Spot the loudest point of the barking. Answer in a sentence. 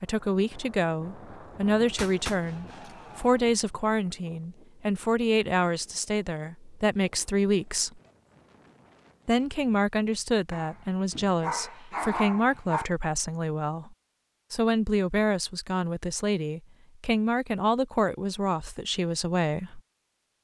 The volume of the barking peaks at 12 seconds.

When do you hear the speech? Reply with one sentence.
You can hear the speech from 0.0 to 8.0 s and from 9.2 to 19.8 s.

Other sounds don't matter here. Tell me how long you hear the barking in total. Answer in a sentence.
You can hear the barking for 2 seconds altogether.